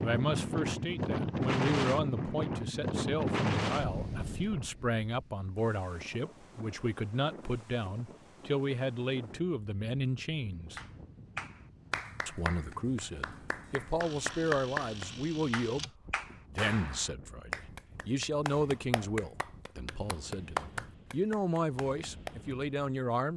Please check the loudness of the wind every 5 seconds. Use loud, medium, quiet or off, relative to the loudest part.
loud, quiet, quiet, quiet, quiet.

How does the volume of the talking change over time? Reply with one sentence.
The loudness of the talking stays about the same.